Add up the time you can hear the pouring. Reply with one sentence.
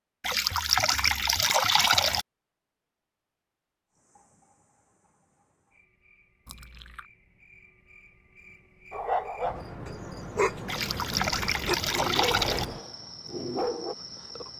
The pouring can be heard for 5 seconds in total.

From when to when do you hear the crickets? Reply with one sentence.
You can hear the crickets from 3.9 to 14.5 s.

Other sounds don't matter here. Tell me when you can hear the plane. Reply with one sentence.
The plane can't be heard in this clip.